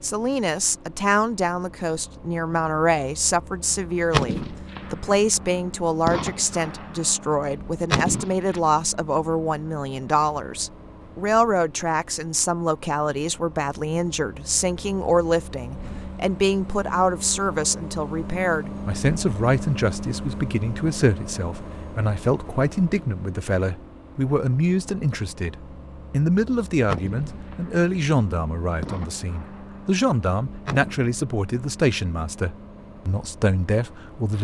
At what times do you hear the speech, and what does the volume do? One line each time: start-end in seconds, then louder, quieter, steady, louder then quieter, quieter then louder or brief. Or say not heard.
0.0-34.3 steady.